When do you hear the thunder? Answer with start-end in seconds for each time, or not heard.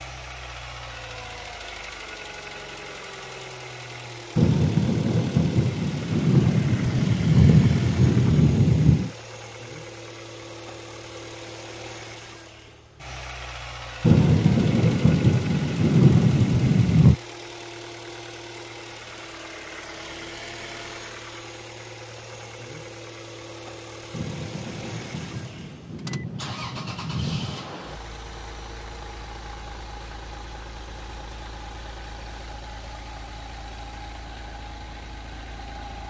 4.3-9.1, 14.0-17.2, 24.1-27.7.